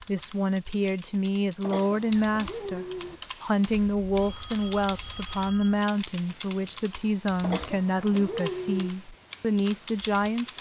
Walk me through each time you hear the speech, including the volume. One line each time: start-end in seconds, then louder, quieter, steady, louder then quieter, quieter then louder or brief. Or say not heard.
0.1-10.5 steady.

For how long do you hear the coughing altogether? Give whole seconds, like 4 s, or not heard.
3 s.